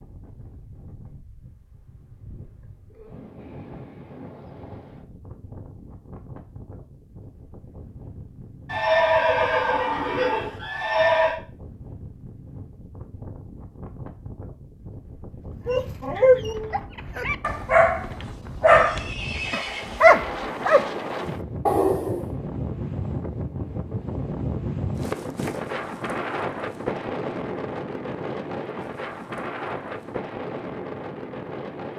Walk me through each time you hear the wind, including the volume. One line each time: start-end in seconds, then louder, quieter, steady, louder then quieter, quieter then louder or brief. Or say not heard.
0.0-31.9 louder.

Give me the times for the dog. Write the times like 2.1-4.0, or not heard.
15.7-22.2.